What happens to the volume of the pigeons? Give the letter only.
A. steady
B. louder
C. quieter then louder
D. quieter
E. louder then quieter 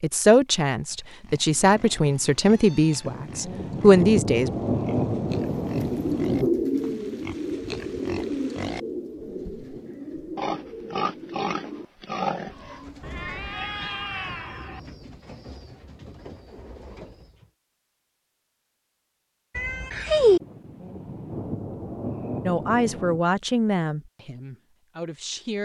D.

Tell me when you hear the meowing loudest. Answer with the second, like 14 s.
20 s.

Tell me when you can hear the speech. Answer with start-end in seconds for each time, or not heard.
0.0-4.5, 22.4-25.6.